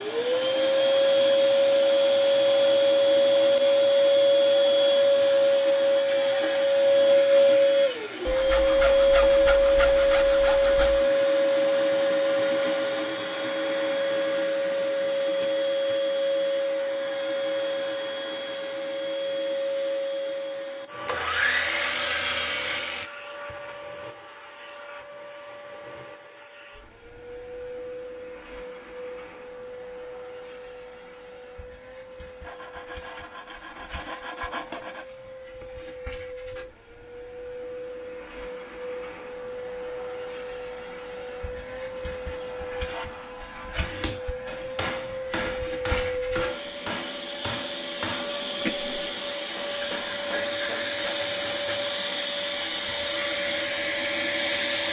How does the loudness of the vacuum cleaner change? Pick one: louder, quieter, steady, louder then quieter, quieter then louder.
quieter then louder.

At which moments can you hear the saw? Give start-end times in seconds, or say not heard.
8.2-11.1, 21.1-23.1, 32.5-35.0, 49.7-52.0.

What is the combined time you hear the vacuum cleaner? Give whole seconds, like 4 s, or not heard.
55 s.